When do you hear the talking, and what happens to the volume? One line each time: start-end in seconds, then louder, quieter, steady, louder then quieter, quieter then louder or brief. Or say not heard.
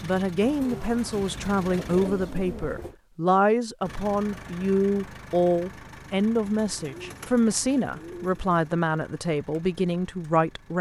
0.0-10.7 steady.